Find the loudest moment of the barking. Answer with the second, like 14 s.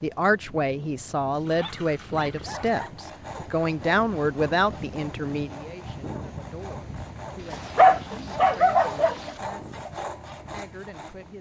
8 s.